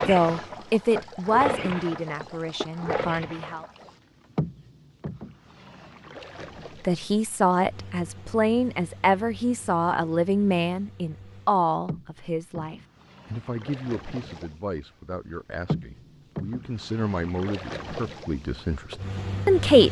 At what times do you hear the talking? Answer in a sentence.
The talking can be heard from 0.1 to 3.6 s and from 6.8 to 19.8 s.